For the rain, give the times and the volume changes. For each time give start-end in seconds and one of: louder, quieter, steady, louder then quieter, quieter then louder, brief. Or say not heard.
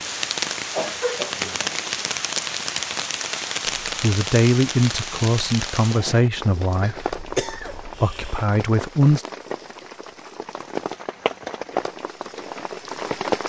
0.0-13.4 quieter then louder.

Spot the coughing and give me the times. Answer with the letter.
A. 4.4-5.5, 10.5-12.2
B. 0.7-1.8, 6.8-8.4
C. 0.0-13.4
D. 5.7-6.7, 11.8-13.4
B.